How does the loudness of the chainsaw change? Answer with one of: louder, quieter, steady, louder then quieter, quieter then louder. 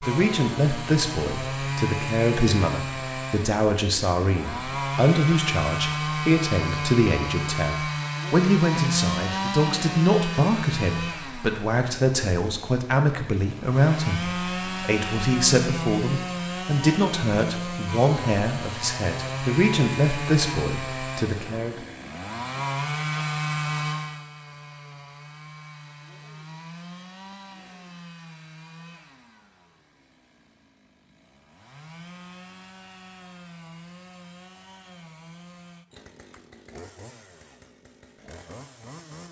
quieter.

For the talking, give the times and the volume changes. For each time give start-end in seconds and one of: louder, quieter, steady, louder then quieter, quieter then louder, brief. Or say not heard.
0.0-21.9 steady.